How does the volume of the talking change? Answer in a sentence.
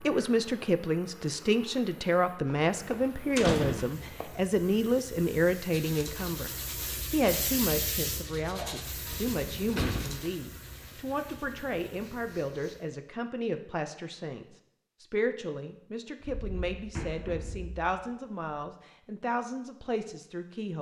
The volume of the talking goes down.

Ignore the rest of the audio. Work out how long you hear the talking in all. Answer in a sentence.
The talking can be heard for 20 seconds in total.